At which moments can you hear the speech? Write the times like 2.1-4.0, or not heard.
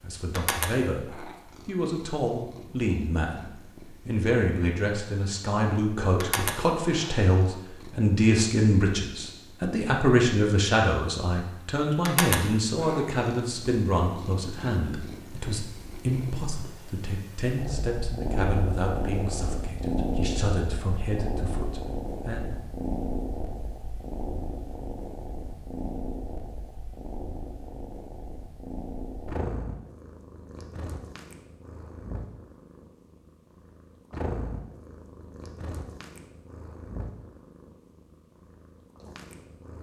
0.0-22.6.